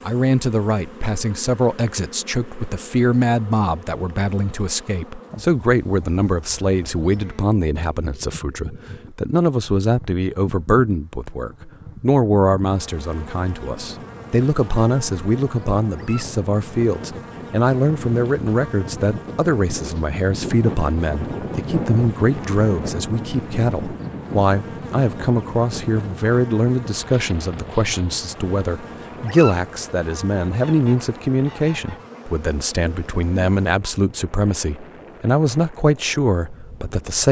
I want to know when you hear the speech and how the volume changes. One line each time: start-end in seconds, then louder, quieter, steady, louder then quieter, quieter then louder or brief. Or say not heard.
0.1-37.2 steady.